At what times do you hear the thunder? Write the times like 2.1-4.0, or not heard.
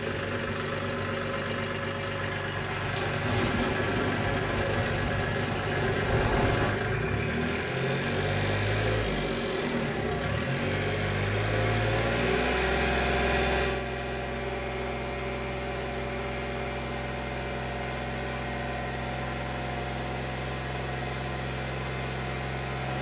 2.6-6.7.